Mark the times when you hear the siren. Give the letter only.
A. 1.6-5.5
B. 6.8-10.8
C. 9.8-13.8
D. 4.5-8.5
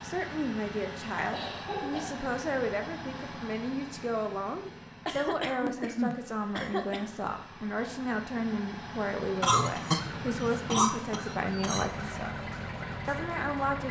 C.